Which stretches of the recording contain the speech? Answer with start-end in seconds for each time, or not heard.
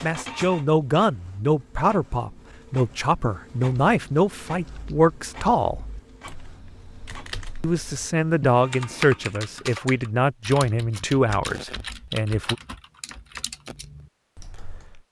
0.0-5.8, 7.6-12.6.